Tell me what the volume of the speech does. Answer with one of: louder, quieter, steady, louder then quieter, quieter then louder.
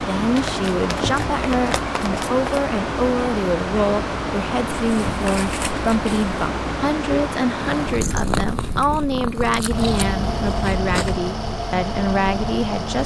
steady.